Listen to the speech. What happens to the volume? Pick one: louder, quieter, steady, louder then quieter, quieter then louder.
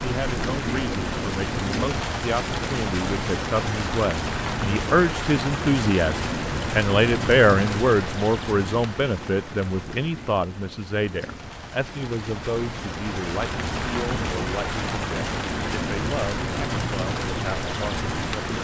louder then quieter.